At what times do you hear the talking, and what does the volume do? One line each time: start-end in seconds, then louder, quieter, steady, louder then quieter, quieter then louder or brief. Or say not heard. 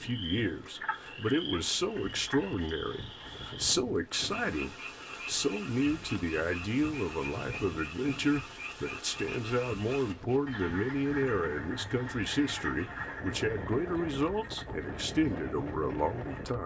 0.0-16.6 steady.